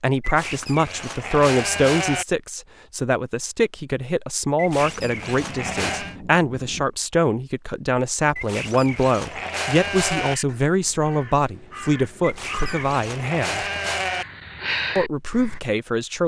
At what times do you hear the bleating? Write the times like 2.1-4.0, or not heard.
0.2-2.2, 4.5-6.2, 8.3-10.3, 12.2-14.2.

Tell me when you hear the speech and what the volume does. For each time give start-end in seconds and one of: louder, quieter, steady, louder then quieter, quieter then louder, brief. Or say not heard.
0.0-13.7 steady
14.9-16.2 brief.